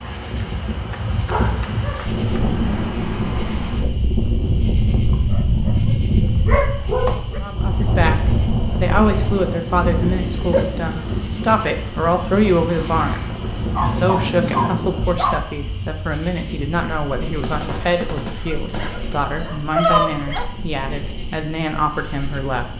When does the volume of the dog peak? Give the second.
20 s.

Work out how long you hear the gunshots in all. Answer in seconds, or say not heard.
2 s.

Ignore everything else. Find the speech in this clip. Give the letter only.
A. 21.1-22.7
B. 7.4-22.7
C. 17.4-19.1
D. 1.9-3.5
B.